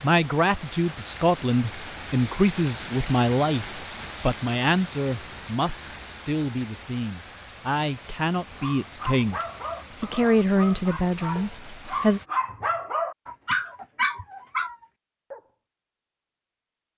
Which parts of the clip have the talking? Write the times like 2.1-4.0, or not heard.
0.0-9.4, 10.0-12.2.